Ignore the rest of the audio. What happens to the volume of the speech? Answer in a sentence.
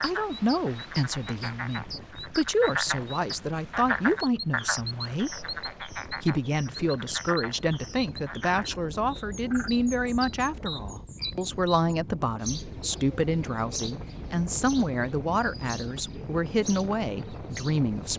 The volume of the speech stays about the same.